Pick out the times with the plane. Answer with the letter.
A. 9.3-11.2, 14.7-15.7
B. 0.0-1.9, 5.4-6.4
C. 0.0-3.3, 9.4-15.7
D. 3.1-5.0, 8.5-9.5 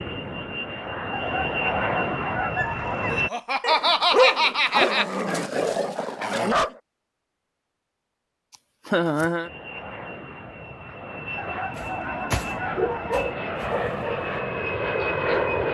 C.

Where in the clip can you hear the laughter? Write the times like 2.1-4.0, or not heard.
3.1-5.0, 8.5-9.5.